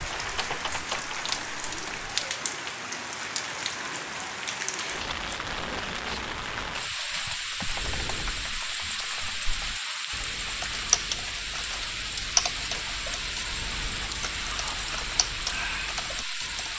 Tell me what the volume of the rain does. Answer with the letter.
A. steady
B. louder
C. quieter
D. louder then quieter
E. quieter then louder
A.